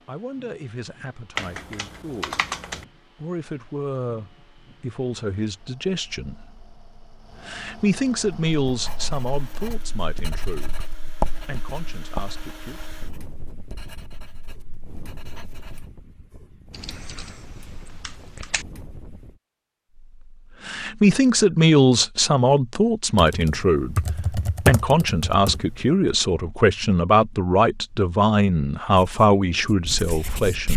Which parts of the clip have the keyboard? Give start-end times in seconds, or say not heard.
1.4-2.9, 16.7-18.6, 23.1-25.9.